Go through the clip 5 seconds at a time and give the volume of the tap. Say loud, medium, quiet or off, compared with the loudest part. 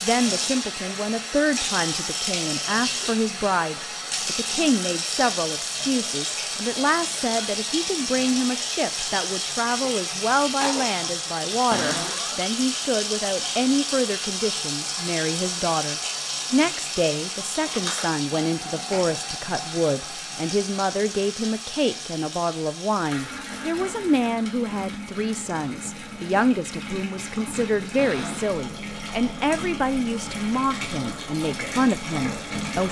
loud, loud, loud, loud, medium, medium, loud.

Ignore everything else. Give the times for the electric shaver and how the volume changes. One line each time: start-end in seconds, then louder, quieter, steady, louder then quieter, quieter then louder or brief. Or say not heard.
not heard.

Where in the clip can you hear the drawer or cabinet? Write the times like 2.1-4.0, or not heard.
11.7-12.3, 27.9-28.6.